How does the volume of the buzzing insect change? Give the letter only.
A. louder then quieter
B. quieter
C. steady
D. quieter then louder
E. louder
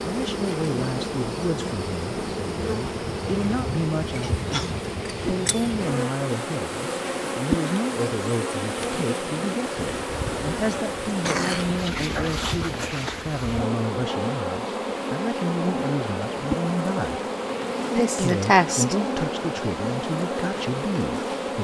C.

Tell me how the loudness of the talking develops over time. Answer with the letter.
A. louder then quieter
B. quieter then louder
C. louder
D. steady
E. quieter
D.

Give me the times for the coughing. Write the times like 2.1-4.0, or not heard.
4.2-4.8, 11.1-12.2, 17.9-18.9.